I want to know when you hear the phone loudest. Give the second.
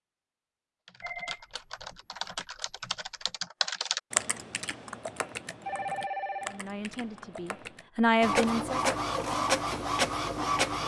6 s.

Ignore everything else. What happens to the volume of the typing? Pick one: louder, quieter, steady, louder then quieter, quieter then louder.
louder then quieter.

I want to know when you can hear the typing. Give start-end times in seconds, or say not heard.
0.8-7.8.